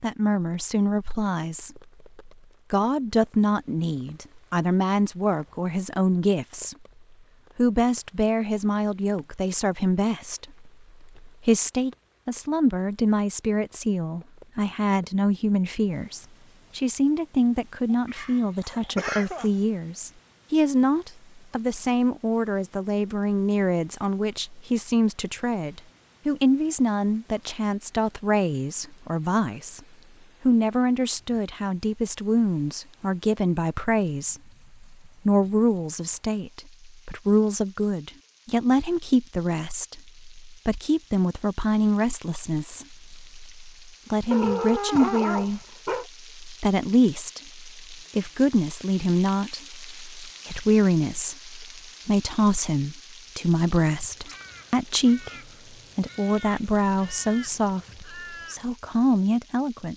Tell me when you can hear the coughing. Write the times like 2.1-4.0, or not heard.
17.9-19.5.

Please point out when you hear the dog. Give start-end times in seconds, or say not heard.
18.1-19.6, 44.3-46.0.